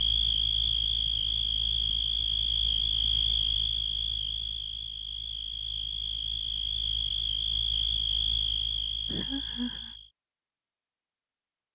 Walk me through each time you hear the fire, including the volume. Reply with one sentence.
The fire can't be heard in this clip.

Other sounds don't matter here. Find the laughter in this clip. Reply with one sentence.
You can hear the laughter from 9.1 to 9.9 s.